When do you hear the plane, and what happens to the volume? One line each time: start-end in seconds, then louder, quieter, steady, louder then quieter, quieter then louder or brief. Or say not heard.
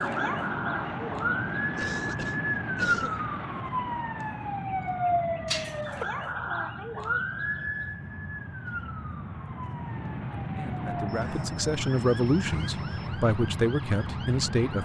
0.0-14.8 quieter then louder.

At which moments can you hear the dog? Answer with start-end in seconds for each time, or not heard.
not heard.